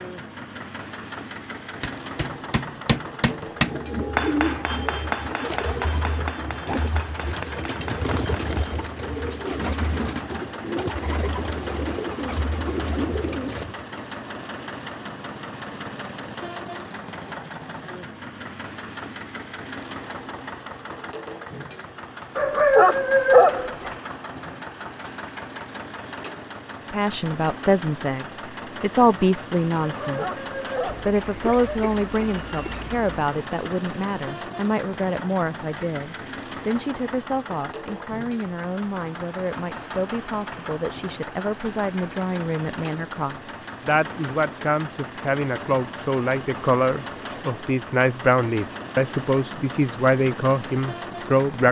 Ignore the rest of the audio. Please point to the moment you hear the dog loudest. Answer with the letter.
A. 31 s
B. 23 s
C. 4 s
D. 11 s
B.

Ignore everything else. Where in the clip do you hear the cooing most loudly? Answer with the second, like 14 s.
4 s.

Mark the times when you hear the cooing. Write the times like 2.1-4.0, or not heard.
3.5-13.8.